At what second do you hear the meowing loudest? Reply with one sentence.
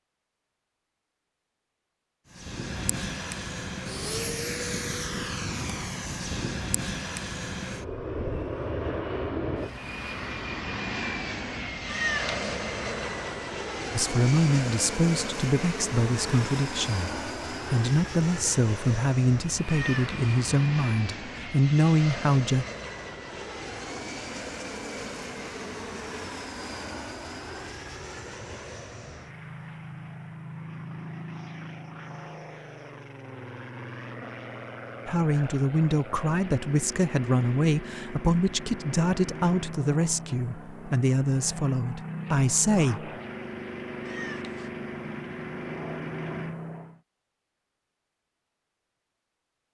The volume of the meowing peaks at 12 seconds.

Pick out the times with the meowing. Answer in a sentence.
The meowing can be heard from 11.8 to 13.6 s, from 19.6 to 20.2 s and from 44.0 to 44.7 s.